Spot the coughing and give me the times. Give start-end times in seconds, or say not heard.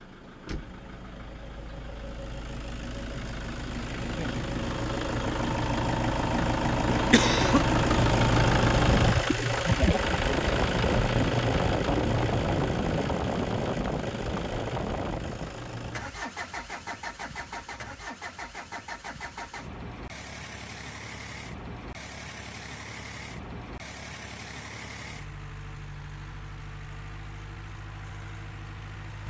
6.8-7.7.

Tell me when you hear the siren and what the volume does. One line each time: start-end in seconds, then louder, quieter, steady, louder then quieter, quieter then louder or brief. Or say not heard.
not heard.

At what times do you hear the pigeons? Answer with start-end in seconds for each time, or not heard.
not heard.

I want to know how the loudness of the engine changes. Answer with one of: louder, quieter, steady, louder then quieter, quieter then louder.
louder then quieter.